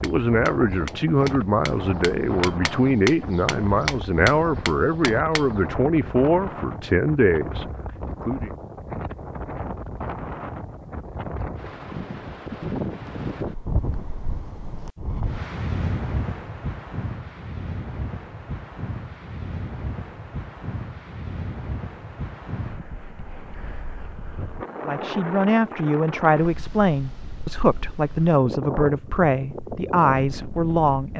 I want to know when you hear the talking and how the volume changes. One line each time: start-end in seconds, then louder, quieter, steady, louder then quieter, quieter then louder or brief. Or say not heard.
0.0-8.5 steady
24.9-31.1 steady.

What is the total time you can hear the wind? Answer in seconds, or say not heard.
31 s.